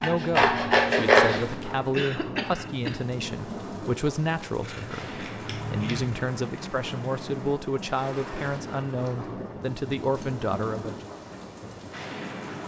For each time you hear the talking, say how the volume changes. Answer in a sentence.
You can hear the talking from 0.0 to 11.1 s, at a steady volume.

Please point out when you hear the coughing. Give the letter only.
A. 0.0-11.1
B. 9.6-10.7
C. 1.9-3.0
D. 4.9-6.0
C.